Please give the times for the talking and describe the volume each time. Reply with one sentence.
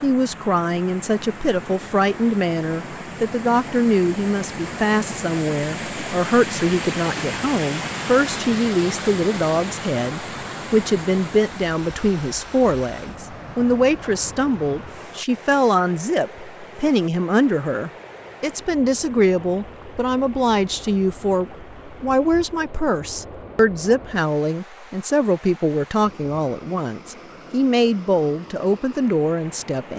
You can hear the talking from 0.0 to 29.9 s, at a steady volume.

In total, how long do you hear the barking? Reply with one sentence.
The barking can't be heard in this clip.